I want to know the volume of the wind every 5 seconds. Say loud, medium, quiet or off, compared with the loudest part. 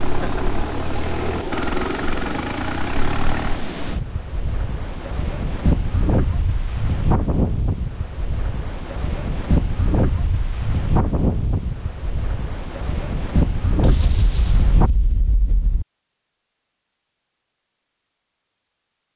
medium, loud, loud, off.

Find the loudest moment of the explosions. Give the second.
14 s.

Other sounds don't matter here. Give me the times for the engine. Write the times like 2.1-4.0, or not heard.
0.0-3.7.